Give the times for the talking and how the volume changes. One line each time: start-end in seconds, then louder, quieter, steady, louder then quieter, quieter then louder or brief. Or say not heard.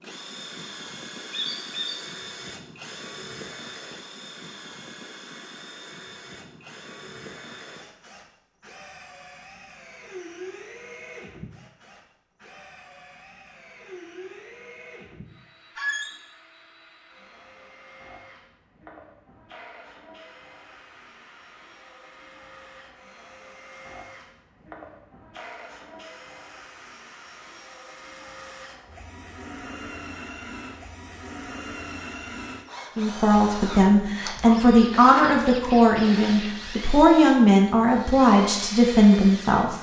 33.0-39.7 steady.